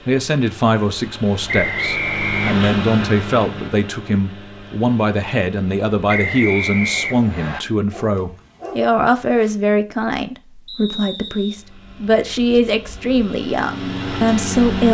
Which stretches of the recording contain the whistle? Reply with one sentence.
You can hear the whistle from 1.4 to 2.5 s, from 6.0 to 7.6 s and from 10.7 to 11.6 s.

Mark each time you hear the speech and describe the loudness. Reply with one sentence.
The speech can be heard from 0.1 to 14.8 s, at a steady volume.